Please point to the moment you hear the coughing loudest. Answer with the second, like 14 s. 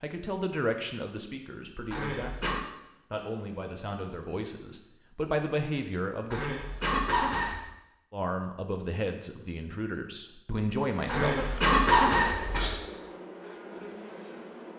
12 s.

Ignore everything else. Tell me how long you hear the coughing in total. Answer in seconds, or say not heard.
4 s.